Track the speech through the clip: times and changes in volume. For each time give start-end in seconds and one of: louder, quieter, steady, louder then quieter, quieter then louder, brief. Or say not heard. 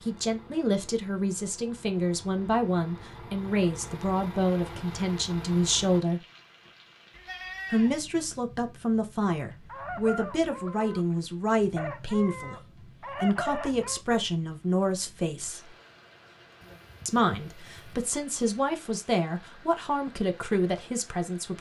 0.0-6.2 steady
7.7-15.8 steady
17.1-21.5 louder.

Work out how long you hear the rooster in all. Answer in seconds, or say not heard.
4 s.